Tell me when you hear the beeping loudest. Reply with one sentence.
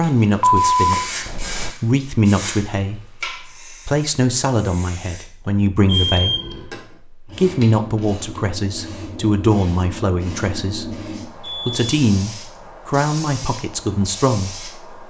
The volume of the beeping peaks at 1 second.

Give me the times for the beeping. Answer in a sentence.
You can hear the beeping from 0.4 to 1.8 s, from 5.8 to 6.7 s and from 11.4 to 11.8 s.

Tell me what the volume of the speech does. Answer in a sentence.
The volume of the speech stays about the same.